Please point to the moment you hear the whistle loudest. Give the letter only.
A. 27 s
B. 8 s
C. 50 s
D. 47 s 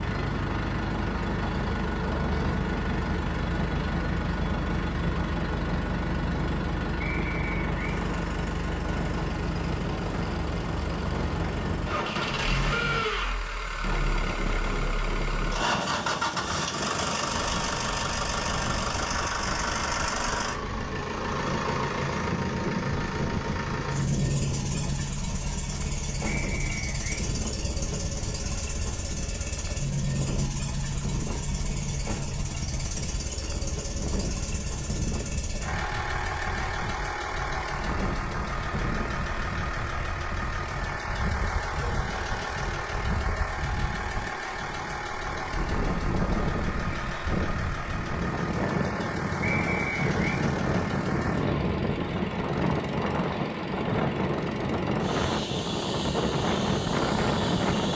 C.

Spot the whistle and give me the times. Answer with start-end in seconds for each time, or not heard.
7.0-7.8, 26.2-27.2, 49.4-50.4.